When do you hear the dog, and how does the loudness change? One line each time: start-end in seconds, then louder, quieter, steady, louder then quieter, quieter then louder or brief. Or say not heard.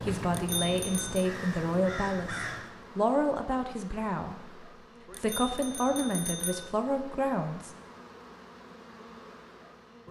not heard.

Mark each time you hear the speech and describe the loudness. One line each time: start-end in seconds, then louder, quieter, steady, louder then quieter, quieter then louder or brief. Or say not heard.
0.0-7.7 steady.